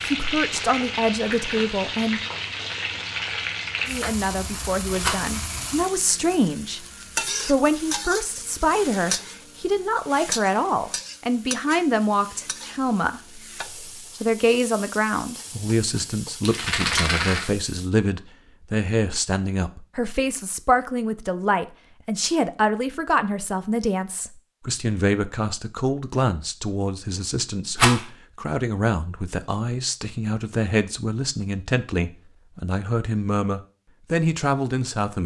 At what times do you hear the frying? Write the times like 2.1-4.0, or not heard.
0.0-17.9.